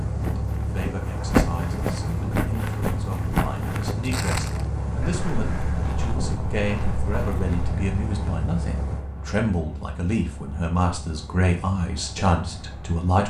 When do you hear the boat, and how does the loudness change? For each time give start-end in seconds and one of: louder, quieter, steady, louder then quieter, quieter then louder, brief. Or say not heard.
0.0-13.2 quieter.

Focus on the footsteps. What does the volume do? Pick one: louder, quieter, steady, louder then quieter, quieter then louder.
quieter.